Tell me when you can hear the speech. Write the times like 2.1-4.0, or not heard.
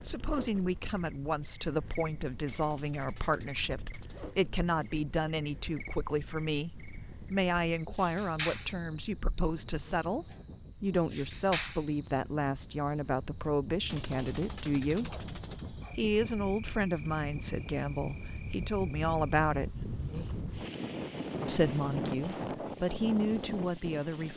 0.0-15.1, 15.9-19.9, 21.4-24.3.